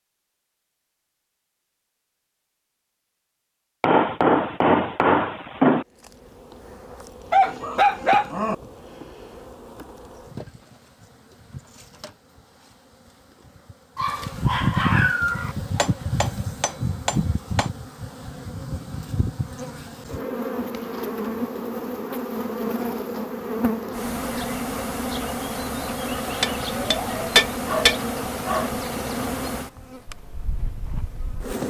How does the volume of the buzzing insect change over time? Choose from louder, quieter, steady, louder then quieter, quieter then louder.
louder.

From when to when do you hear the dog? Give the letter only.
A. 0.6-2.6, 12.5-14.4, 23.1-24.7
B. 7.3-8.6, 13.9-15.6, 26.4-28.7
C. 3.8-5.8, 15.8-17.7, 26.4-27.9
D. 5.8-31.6
B.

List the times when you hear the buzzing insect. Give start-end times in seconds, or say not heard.
5.8-31.6.